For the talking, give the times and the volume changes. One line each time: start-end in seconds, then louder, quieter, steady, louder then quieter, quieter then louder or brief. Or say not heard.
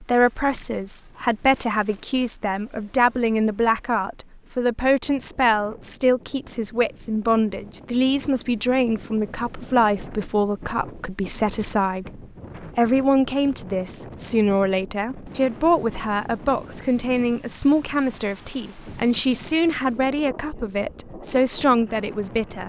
0.0-22.6 steady.